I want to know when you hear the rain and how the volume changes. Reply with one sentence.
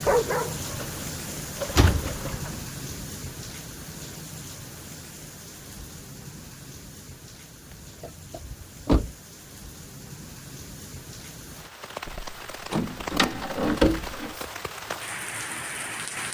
The rain can be heard from 0.0 to 16.3 s, getting quieter then louder.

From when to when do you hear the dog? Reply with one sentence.
The dog can be heard from 0.0 to 2.5 s.